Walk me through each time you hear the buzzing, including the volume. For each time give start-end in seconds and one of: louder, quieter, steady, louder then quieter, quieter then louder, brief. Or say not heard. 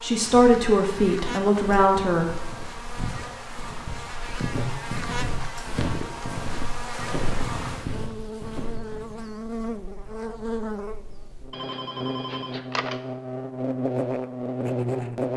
0.0-15.3 louder.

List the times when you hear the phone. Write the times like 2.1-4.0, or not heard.
11.5-13.0.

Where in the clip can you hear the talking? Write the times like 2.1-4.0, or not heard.
0.0-2.2.